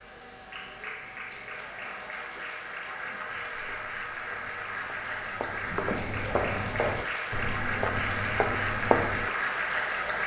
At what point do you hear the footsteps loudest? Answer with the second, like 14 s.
9 s.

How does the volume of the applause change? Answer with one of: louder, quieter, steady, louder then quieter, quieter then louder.
louder.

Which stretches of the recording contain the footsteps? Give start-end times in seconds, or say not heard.
3.2-9.3.